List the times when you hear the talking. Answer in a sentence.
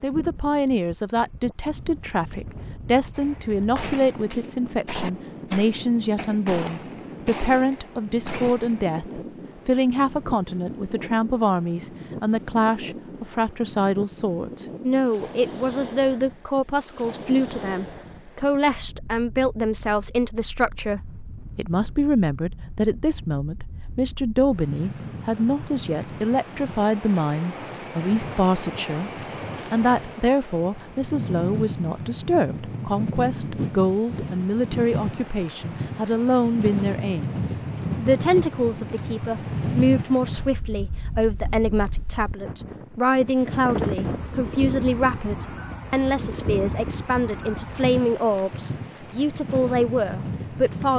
You can hear the talking from 0.0 to 29.1 s and from 29.7 to 50.9 s.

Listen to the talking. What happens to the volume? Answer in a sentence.
The volume of the talking stays about the same.